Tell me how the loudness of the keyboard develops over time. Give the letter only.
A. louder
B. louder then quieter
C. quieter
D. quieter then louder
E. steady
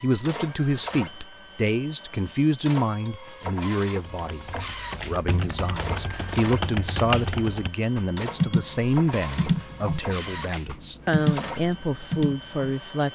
A.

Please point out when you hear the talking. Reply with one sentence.
You can hear the talking from 0.0 to 13.1 s.